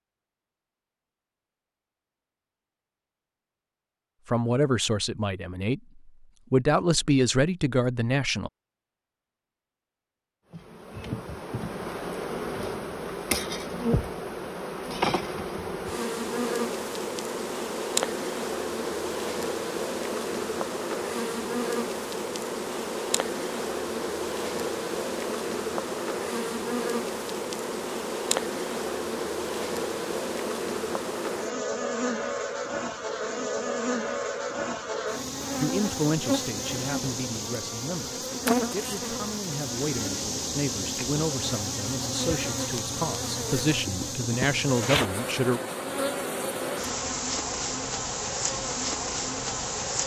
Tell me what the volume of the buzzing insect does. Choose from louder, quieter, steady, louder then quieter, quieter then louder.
steady.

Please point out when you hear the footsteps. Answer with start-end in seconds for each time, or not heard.
not heard.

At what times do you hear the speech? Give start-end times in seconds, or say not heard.
4.2-8.5, 35.6-45.6.